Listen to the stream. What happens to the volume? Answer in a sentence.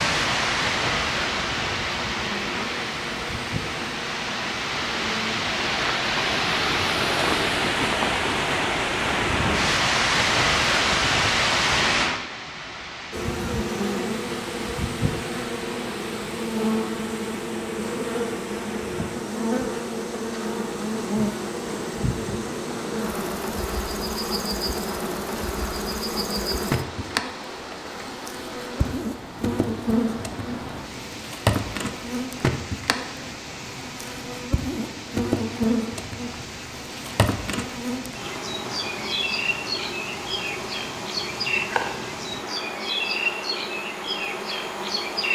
The volume of the stream goes down.